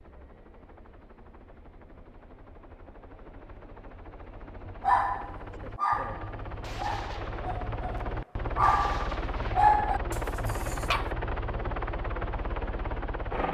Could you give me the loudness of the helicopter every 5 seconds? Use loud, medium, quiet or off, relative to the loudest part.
quiet, loud, loud.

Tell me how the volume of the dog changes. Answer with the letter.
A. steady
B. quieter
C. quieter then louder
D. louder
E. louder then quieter
C.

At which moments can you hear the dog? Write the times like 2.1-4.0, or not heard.
4.8-11.2.